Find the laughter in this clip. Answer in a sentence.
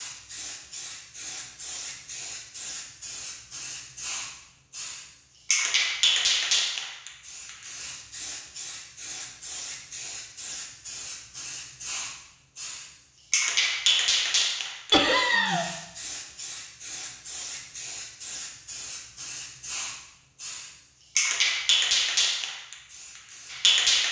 The laughter can be heard from 14.9 to 15.7 s.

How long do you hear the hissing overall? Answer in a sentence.
You can hear the hissing for 24 seconds altogether.